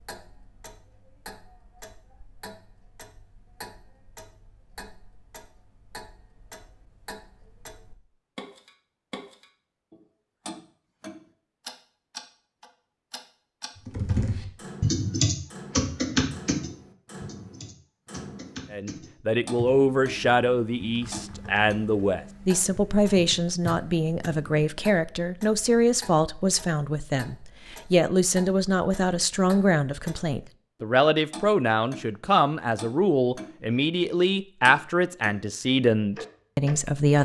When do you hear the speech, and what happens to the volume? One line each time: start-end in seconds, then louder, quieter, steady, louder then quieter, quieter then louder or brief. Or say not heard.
18.7-37.1 steady.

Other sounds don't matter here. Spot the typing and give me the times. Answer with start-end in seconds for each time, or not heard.
13.8-24.7.